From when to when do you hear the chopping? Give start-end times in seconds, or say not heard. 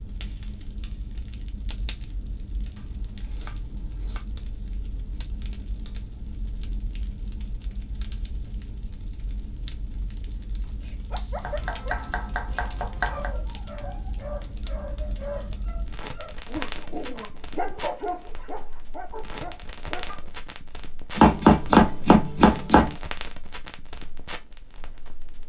2.8-4.2, 11.4-13.3, 21.1-22.9.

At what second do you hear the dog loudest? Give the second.
18 s.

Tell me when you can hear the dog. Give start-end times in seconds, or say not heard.
10.6-20.3.